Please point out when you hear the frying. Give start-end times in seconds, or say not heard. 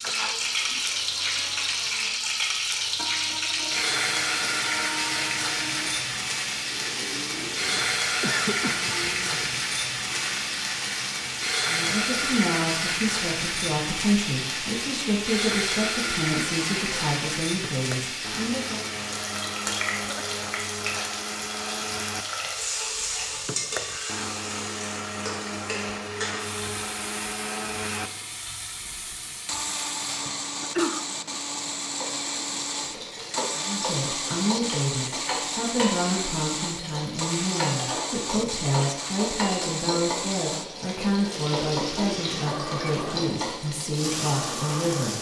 0.0-45.1.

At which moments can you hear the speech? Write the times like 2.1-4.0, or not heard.
11.7-18.9, 33.5-45.1.